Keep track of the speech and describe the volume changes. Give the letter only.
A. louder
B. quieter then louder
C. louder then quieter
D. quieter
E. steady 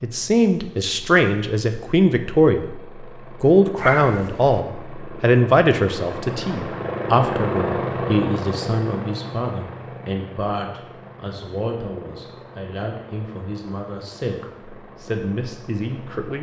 D.